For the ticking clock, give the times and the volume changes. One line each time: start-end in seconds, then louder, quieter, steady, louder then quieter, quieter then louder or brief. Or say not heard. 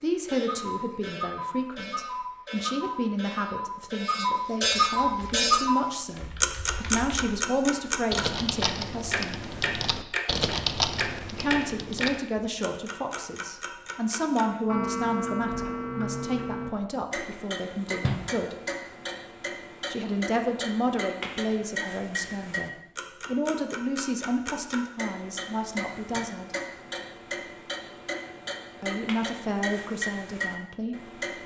0.0-31.4 quieter.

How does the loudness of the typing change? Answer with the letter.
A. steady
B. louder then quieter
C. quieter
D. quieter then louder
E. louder
E.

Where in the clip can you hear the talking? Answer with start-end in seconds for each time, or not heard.
0.0-9.3, 11.3-18.6, 19.9-26.6, 28.8-30.9.